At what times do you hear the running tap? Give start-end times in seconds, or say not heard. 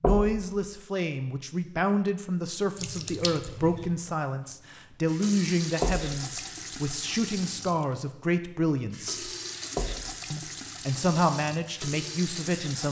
2.8-12.8.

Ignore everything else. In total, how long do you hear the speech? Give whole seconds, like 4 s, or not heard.
12 s.